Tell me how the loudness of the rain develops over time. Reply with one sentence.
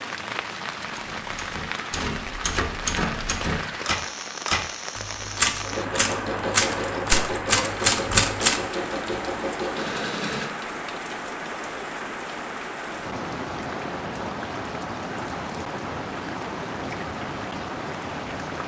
The loudness of the rain stays about the same.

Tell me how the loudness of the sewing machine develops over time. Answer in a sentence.
The volume of the sewing machine stays about the same.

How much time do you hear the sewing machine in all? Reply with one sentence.
The sewing machine can be heard for 5 seconds in total.